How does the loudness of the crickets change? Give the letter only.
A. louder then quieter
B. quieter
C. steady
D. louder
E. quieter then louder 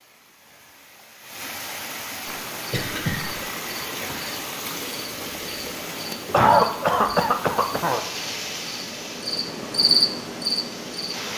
D.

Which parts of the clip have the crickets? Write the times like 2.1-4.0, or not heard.
2.2-11.3.